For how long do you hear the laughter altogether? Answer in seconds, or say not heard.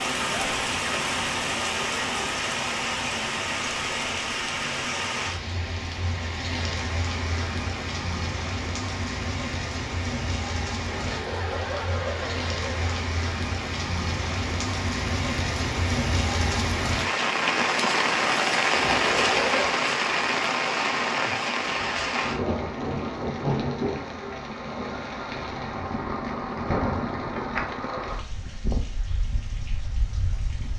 3 s.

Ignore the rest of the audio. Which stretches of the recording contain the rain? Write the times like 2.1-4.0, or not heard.
0.0-30.7.